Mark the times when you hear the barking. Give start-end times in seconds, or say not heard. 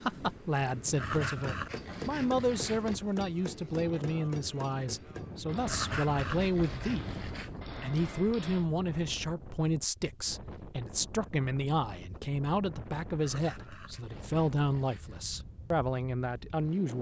0.9-3.0, 5.7-7.6, 13.2-15.2.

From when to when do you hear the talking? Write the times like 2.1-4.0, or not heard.
0.0-7.2, 7.8-16.9.